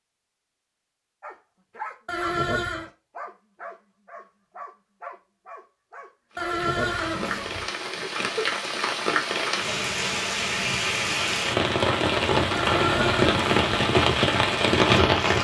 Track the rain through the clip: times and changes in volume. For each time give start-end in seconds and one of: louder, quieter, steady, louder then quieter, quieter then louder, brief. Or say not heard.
6.3-15.3 louder.